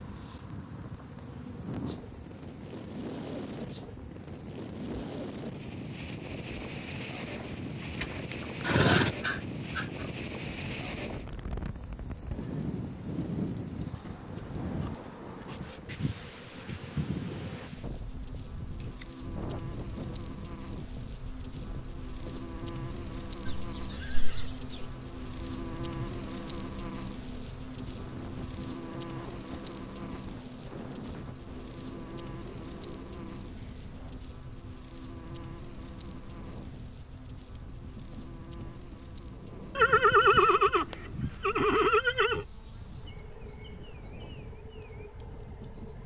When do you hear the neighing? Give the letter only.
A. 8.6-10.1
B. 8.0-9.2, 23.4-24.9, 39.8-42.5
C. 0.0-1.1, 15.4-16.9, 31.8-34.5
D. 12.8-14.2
B.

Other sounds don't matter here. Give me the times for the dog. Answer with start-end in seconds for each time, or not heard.
8.6-10.1.